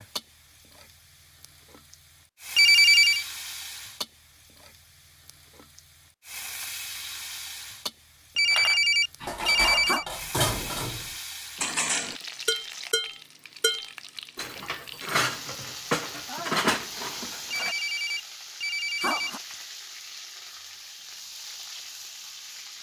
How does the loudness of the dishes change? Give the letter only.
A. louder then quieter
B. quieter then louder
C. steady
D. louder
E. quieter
C.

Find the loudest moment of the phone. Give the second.
3 s.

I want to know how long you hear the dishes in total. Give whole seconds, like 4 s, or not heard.
9 s.